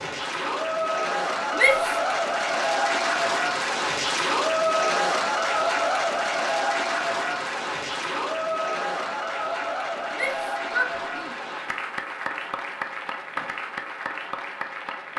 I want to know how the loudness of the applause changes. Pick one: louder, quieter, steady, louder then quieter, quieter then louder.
quieter.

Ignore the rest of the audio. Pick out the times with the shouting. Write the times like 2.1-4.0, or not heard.
1.6-2.1, 10.1-11.3.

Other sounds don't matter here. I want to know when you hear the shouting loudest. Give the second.
2 s.